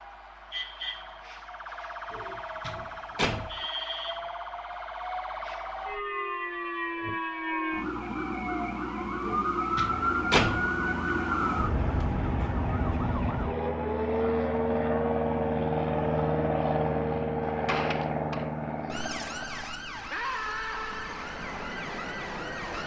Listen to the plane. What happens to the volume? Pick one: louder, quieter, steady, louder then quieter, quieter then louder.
louder then quieter.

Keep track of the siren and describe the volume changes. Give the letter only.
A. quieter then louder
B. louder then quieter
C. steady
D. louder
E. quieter
B.